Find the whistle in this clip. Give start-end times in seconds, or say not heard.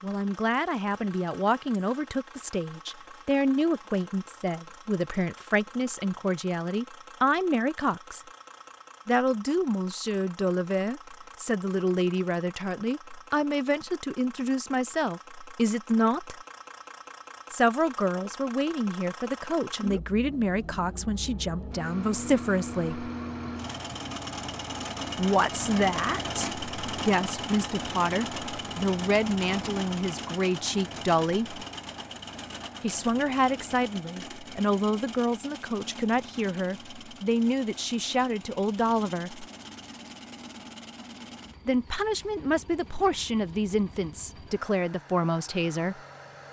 not heard.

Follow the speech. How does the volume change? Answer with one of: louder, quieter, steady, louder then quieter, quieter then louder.
steady.